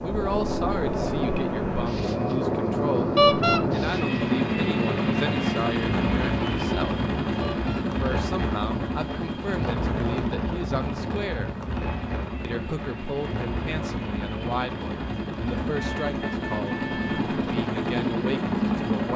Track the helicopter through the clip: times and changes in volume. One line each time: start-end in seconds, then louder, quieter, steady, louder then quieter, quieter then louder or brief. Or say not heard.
0.0-19.1 quieter then louder.